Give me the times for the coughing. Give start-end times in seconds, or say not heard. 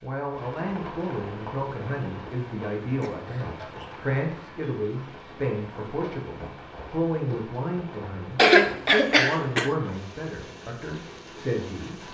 3.0-3.8, 8.3-9.7.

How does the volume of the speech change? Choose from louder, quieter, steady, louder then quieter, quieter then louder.
steady.